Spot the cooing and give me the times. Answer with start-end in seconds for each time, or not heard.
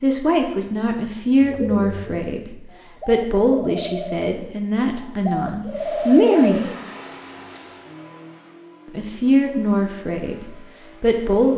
1.4-7.2.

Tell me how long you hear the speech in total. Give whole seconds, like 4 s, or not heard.
9 s.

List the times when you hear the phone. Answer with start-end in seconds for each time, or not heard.
not heard.